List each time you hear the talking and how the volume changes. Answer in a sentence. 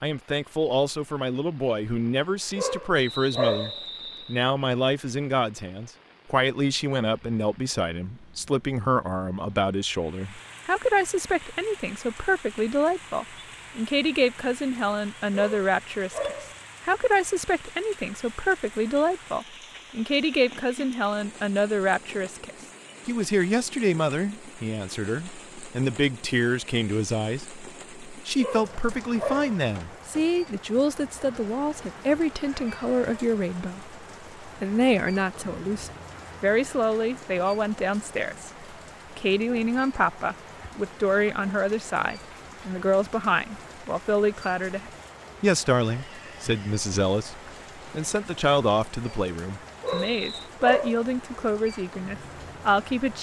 The talking can be heard from 0.0 to 53.1 s, at a steady volume.